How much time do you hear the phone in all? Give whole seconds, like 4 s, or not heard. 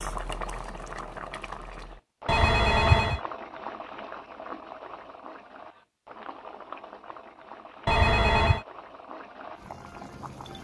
2 s.